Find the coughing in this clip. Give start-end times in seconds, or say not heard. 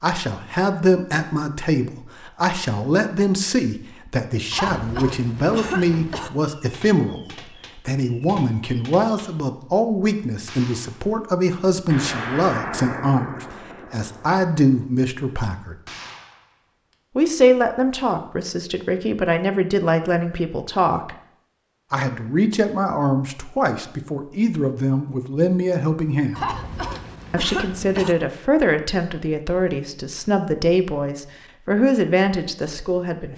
4.5-6.3, 26.4-28.1.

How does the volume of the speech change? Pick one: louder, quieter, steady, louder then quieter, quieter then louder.
steady.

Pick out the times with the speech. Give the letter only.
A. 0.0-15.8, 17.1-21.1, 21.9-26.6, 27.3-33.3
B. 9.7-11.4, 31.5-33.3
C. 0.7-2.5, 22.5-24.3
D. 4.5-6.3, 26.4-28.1
A.